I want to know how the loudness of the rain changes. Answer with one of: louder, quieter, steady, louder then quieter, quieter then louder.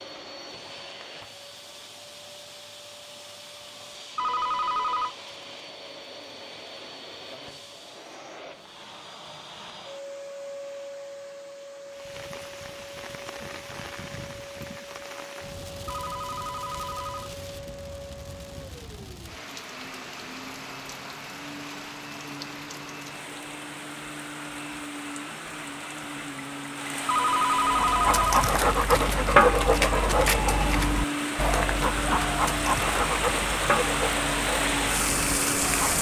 louder.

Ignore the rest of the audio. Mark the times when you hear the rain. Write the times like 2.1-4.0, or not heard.
11.8-35.9.